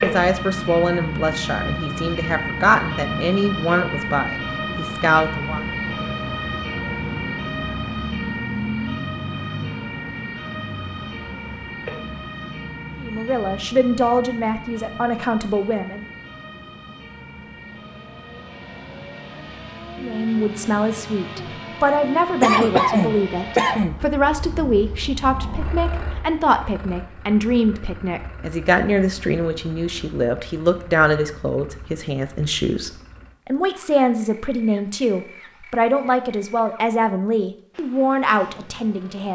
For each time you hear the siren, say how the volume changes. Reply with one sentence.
The siren can be heard from 0.0 to 26.2 s, getting quieter.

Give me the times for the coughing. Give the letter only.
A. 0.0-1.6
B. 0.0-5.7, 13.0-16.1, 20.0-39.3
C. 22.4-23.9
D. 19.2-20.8
C.